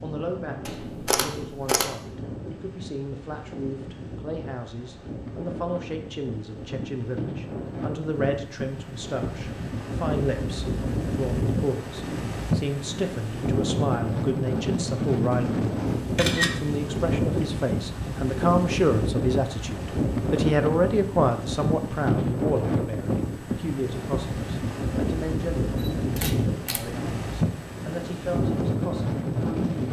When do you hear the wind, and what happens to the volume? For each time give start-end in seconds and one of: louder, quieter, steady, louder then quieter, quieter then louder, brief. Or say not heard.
0.0-29.8 louder.